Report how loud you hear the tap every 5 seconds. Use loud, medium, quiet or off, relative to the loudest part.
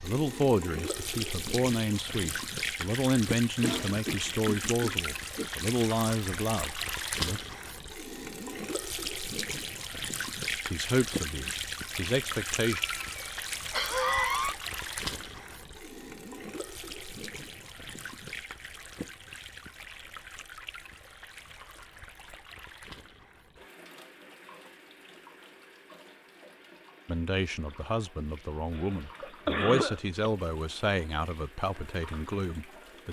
loud, loud, loud, medium, quiet, quiet, quiet.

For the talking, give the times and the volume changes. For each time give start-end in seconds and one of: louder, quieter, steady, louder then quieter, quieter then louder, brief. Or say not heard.
0.0-7.4 steady
10.7-12.8 brief
27.1-33.0 louder then quieter.